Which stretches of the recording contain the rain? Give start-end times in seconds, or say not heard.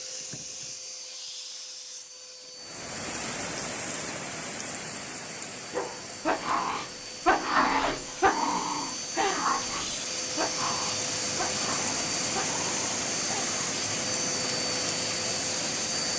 2.5-16.1.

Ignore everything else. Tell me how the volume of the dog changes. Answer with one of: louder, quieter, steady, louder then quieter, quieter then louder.
quieter.